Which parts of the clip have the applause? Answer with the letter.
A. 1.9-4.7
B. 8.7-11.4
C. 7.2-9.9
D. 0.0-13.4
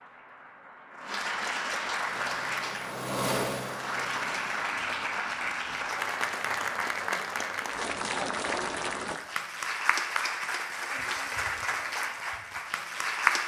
D.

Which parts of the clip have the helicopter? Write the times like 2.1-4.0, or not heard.
1.9-4.7.